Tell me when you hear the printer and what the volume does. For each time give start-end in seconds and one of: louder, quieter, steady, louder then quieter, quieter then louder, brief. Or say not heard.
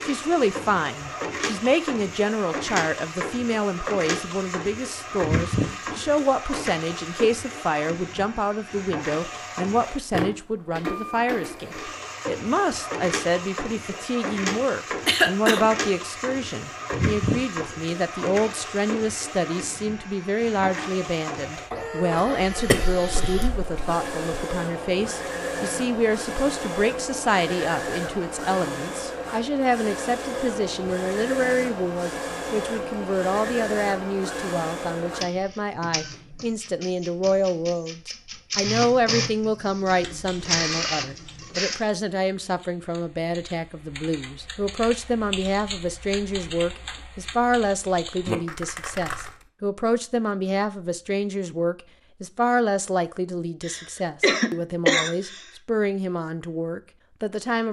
0.0-41.8 steady.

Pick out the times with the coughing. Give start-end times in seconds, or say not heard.
15.1-15.6, 22.6-24.4, 53.6-55.5.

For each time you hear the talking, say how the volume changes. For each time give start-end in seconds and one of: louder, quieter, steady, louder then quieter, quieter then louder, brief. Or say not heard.
0.0-57.6 steady.